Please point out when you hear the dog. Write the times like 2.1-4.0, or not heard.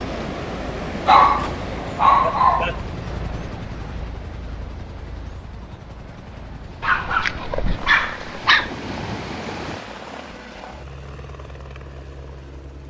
1.1-2.8, 6.8-8.7.